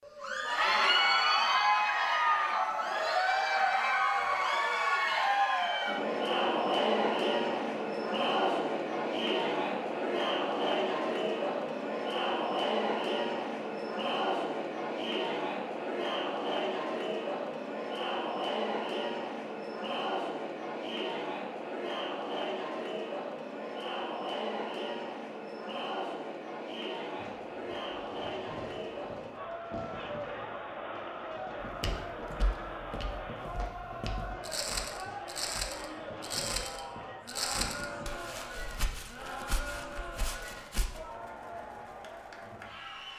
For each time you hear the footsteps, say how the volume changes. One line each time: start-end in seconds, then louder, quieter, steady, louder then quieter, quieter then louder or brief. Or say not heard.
31.6-41.0 louder then quieter.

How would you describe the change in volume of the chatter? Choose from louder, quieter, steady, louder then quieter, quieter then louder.
quieter.